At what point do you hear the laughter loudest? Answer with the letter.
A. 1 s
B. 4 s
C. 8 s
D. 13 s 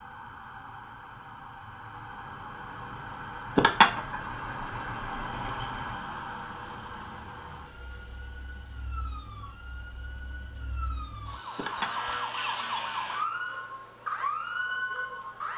B.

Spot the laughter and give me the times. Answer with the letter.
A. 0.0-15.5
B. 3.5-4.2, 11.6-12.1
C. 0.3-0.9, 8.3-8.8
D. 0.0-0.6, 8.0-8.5
B.